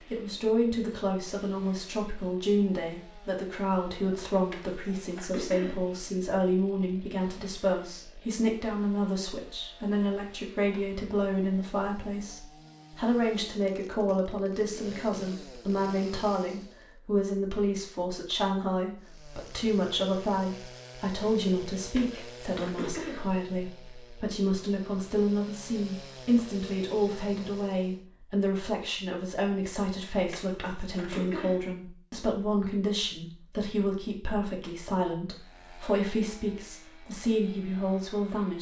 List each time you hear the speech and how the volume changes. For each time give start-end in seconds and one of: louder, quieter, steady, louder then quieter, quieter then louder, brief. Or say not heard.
0.1-38.5 steady.